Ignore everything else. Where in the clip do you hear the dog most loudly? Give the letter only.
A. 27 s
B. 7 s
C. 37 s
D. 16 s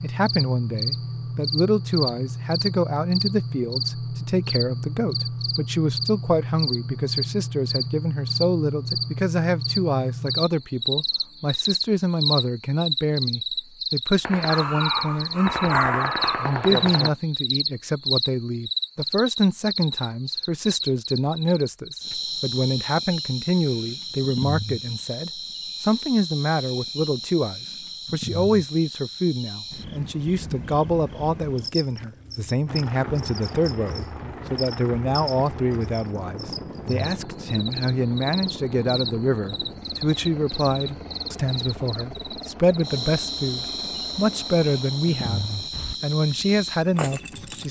D.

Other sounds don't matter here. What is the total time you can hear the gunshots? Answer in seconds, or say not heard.
3 s.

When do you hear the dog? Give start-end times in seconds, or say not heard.
14.4-16.5.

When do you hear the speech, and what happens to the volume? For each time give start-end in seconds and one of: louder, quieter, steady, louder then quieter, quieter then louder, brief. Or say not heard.
0.0-47.6 steady.